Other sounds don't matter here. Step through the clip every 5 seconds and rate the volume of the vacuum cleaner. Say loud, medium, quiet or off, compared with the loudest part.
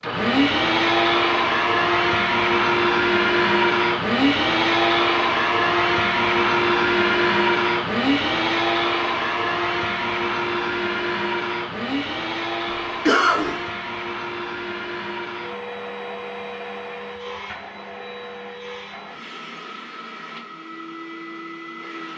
loud, loud, medium, quiet, quiet.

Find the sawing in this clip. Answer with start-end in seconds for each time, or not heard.
not heard.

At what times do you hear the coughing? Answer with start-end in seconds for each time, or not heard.
12.7-13.7.